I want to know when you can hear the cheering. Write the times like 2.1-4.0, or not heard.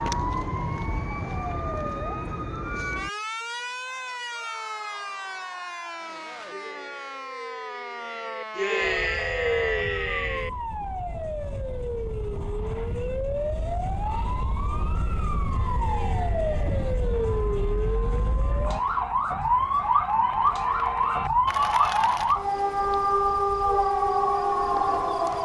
3.8-10.5, 15.5-22.4.